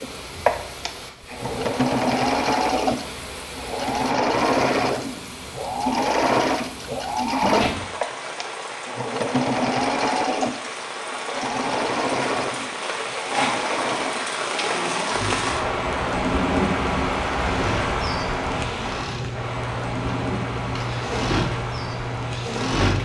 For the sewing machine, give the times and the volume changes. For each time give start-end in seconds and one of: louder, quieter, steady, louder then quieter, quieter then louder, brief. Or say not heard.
0.0-23.0 quieter.